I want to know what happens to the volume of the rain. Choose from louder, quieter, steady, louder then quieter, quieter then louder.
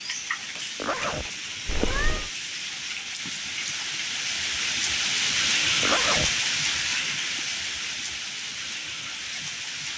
louder then quieter.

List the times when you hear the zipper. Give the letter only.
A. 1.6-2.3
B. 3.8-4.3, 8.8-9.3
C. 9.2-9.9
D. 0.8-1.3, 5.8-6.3
D.